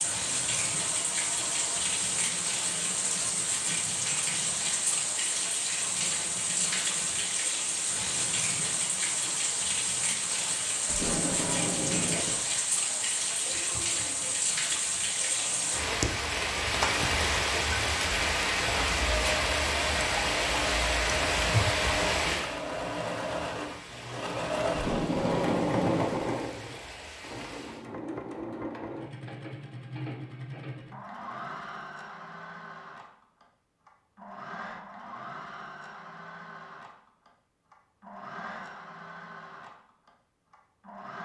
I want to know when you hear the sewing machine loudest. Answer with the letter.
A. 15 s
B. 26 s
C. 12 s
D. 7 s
B.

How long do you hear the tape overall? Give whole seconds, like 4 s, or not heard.
3 s.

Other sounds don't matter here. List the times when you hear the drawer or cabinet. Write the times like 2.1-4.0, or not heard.
not heard.